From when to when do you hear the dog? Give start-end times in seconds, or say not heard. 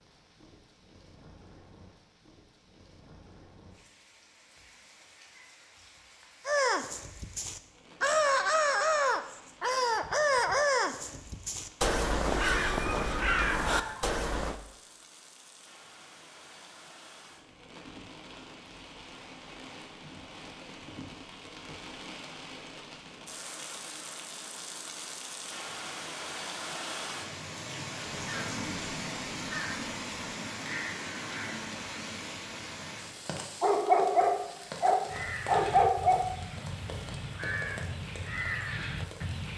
12.6-14.1, 33.6-36.3.